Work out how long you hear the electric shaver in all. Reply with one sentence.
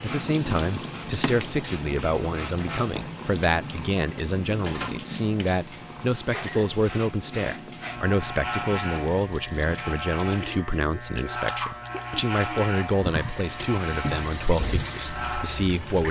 The electric shaver can be heard for 16 seconds in total.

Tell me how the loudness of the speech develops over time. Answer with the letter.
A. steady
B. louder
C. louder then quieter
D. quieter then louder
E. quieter
A.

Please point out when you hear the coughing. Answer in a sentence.
The coughing can be heard from 6.3 to 6.8 s.